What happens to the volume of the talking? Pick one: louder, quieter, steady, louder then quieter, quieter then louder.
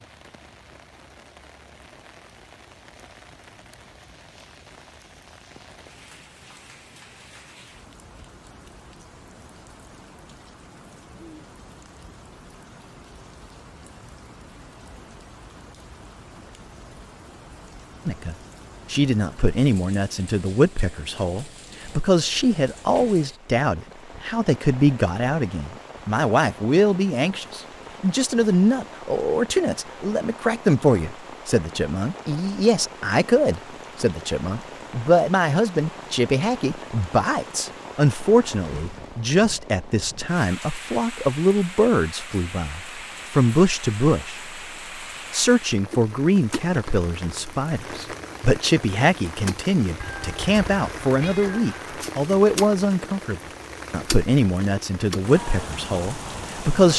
steady.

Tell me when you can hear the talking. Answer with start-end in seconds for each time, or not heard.
18.1-44.5, 45.3-56.9.